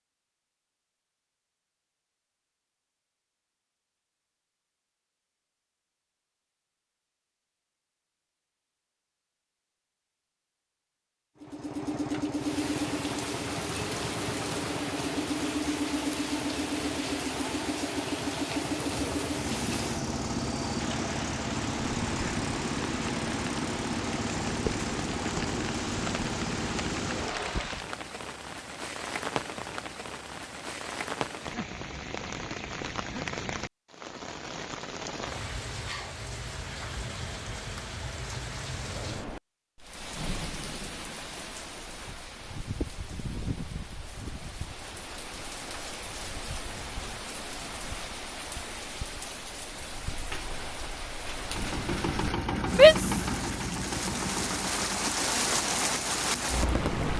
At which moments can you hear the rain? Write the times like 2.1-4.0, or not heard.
12.3-57.1.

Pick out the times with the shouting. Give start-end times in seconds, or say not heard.
52.7-53.1.